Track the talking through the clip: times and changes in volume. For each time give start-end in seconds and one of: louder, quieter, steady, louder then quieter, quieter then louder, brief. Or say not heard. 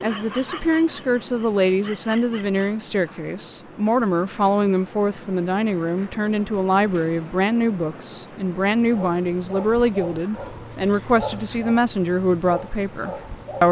0.0-13.6 steady.